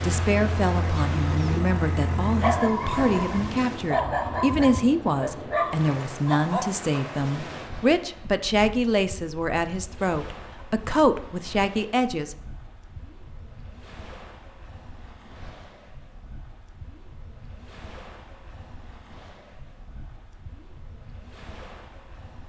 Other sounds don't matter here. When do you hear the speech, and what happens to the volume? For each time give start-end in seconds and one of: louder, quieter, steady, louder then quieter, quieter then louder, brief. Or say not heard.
0.0-12.3 steady.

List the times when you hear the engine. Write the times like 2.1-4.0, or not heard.
0.0-2.6.